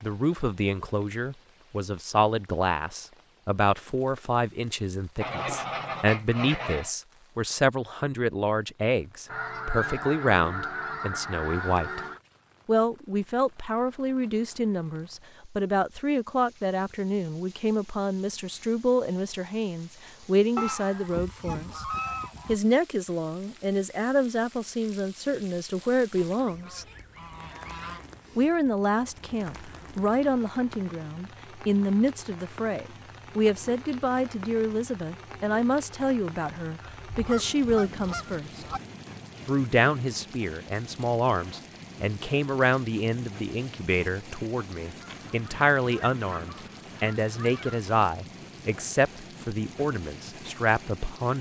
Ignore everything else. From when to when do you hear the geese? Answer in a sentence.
The geese can be heard from 5.2 to 6.9 s, from 9.2 to 12.2 s, from 20.6 to 22.6 s, from 26.1 to 28.1 s, from 37.0 to 38.8 s and from 45.0 to 47.8 s.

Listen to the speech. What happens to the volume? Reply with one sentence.
The volume of the speech stays about the same.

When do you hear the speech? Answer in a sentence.
You can hear the speech from 0.0 to 12.0 s, from 12.7 to 21.9 s, from 22.4 to 26.9 s, from 28.4 to 38.6 s and from 39.5 to 51.3 s.